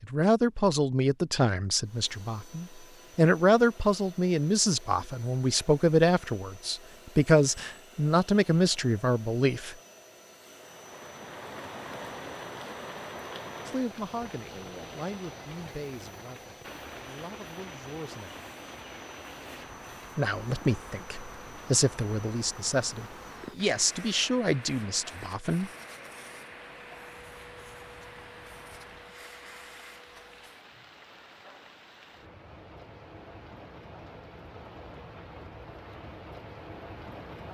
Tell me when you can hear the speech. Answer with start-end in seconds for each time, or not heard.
0.0-9.8, 13.7-18.3, 20.1-25.7.